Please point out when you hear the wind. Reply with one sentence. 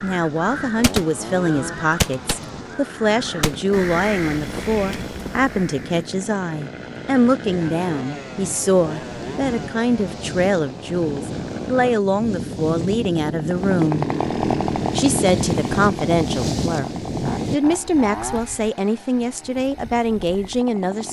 The wind can be heard from 0.0 to 17.6 s.